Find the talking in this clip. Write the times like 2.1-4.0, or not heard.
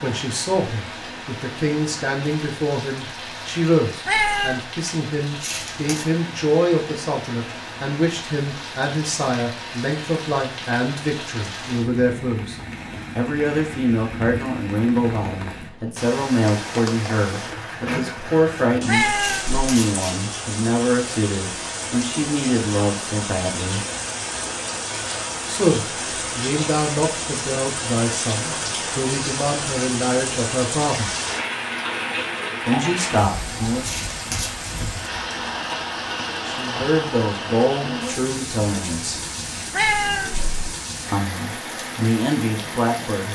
0.0-12.6, 13.2-23.9, 25.4-31.1, 32.6-34.0, 36.5-39.2, 41.1-43.3.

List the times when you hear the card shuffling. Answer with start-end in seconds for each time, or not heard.
5.4-6.0, 19.2-20.2, 33.8-34.7.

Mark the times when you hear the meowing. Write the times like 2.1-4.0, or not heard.
4.0-4.6, 18.9-19.6, 39.7-40.5.